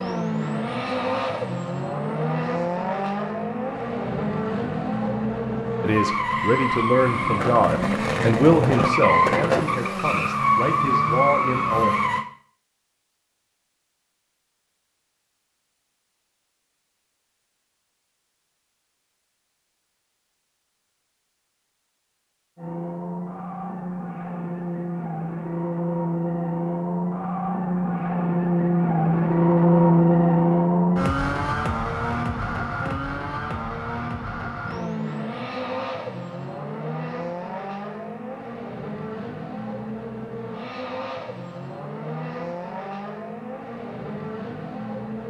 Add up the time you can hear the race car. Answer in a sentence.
You can hear the race car for 35 seconds altogether.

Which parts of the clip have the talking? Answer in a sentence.
You can hear the talking from 5.8 to 11.9 s.